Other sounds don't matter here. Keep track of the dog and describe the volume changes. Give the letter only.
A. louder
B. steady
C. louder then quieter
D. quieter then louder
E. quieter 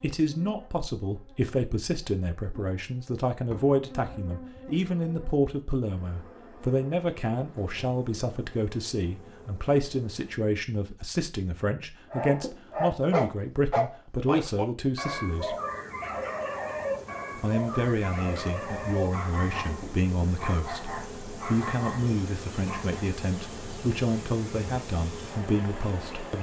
E.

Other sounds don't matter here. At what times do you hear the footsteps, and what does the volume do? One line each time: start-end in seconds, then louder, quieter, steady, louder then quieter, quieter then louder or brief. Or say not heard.
not heard.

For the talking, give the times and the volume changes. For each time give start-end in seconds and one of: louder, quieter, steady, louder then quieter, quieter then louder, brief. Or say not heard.
0.0-15.6 steady
17.4-26.3 steady.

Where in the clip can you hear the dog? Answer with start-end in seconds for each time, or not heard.
12.1-23.2.